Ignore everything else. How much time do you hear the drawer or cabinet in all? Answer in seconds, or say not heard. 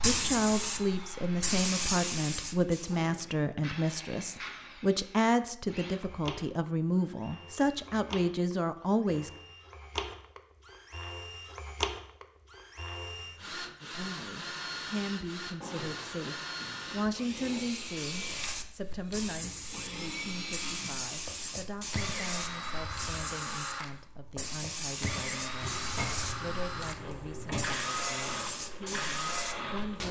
5 s.